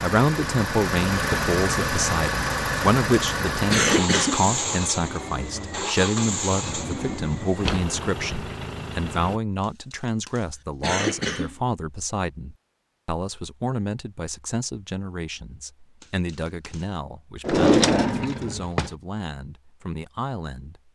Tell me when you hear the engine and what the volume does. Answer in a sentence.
The engine can be heard from 0.0 to 9.4 s, getting quieter.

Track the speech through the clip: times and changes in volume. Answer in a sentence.
The speech can be heard from 0.0 to 20.9 s, getting quieter.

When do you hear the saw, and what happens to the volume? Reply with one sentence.
You can't hear the saw here.